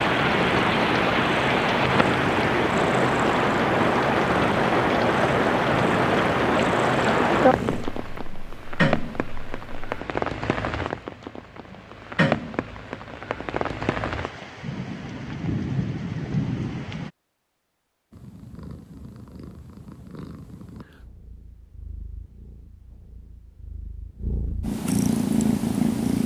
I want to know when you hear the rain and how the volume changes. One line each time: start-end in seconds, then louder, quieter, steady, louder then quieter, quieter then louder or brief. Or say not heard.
0.0-17.1 quieter.